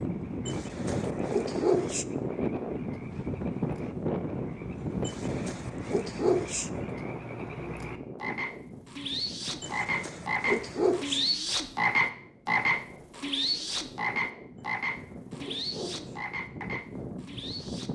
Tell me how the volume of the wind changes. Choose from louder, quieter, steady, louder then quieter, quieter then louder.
quieter then louder.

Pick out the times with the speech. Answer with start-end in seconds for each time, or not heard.
not heard.